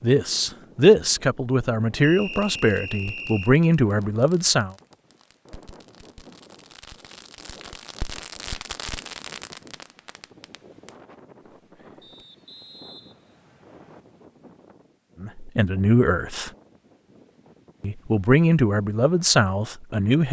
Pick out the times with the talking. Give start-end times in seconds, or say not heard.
0.0-4.8, 15.2-16.5, 17.8-20.2.